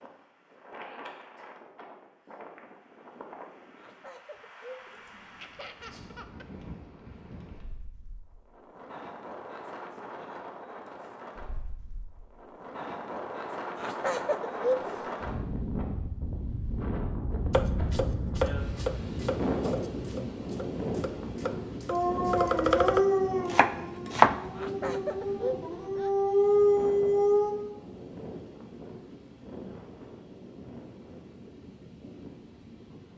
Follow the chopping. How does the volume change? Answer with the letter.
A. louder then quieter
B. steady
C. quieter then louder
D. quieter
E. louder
C.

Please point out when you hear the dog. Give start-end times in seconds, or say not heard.
21.9-27.6.